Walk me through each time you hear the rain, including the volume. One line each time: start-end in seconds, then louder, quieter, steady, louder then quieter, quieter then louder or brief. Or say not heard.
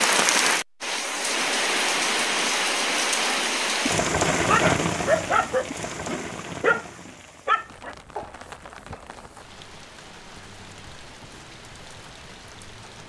0.0-13.0 quieter.